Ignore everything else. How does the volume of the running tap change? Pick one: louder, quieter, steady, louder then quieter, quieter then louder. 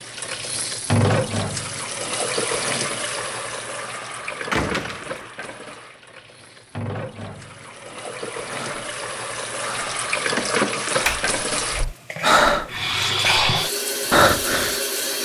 quieter then louder.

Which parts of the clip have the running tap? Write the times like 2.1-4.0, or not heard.
0.0-15.1.